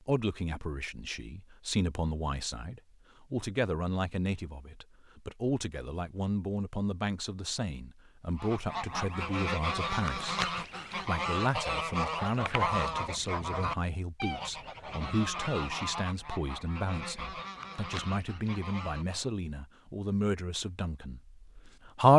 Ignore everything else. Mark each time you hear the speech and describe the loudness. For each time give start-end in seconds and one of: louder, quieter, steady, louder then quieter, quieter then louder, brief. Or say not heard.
0.1-22.1 steady.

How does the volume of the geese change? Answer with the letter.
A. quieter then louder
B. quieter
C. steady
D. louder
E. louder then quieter
B.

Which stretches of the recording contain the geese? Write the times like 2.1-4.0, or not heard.
8.3-19.3.